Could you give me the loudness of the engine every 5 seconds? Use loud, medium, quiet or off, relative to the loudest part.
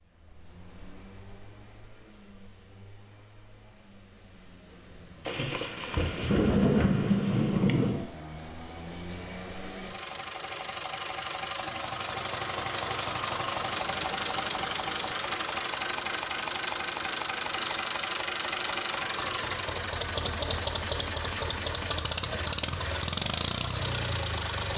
quiet, quiet, loud, loud, loud.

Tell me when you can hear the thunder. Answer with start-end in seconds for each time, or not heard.
5.2-8.1.